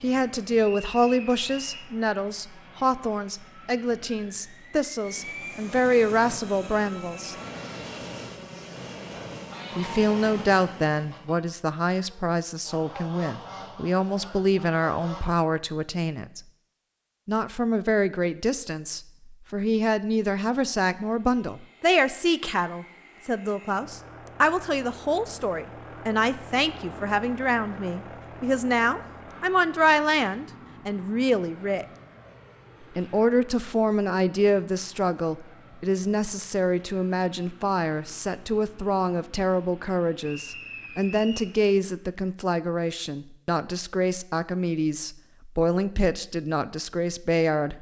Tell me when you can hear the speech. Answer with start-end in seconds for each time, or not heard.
0.0-7.3, 9.8-16.4, 17.2-31.9, 33.0-47.7.